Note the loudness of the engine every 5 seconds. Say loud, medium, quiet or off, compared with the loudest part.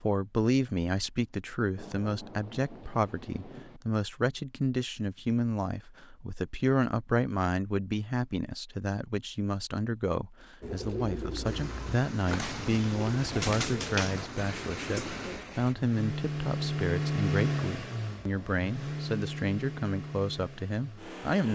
off, off, medium, loud, medium.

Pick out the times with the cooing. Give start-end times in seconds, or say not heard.
10.6-15.8.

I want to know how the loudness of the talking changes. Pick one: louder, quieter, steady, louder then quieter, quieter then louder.
steady.